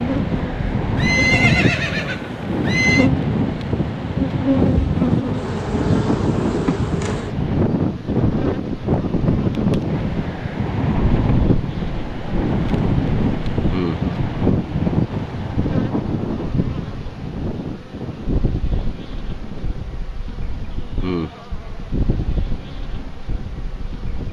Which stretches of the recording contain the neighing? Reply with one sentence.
You can hear the neighing from 0.9 to 3.1 s.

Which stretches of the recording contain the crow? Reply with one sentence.
The crow can't be heard in this clip.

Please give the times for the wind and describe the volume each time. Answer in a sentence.
The wind can be heard from 0.0 to 24.2 s, getting quieter.